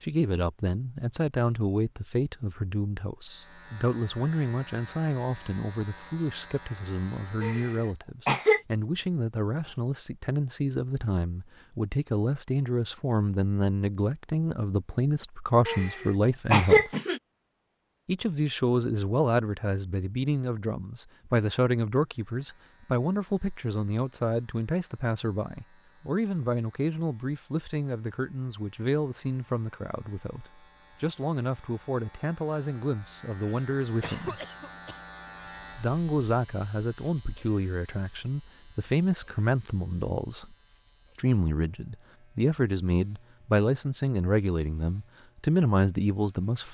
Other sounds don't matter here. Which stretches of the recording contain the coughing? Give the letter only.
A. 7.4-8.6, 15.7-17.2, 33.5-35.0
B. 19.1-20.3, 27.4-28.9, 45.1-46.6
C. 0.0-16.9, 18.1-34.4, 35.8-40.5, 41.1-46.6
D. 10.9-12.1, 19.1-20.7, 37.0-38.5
A.